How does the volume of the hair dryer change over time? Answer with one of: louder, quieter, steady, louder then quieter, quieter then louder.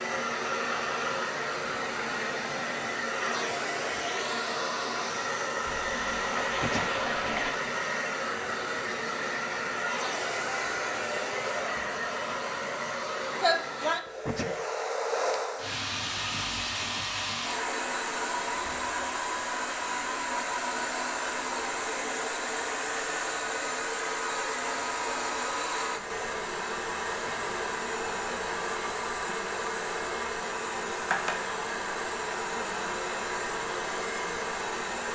steady.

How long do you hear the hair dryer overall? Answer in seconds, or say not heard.
35 s.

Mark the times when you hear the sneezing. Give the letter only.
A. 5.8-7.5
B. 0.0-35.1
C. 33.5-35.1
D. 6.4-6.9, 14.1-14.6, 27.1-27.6
D.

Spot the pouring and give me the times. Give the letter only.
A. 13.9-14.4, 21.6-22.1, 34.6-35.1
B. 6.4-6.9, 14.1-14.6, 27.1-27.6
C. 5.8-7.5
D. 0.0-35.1
C.